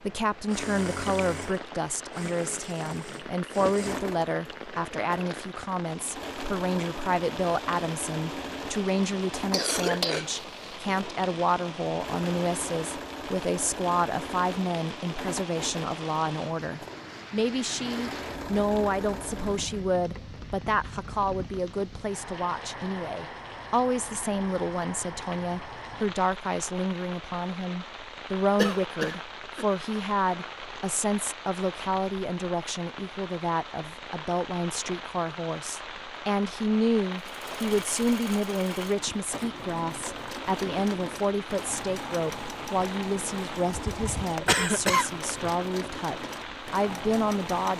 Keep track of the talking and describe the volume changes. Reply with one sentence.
The loudness of the talking stays about the same.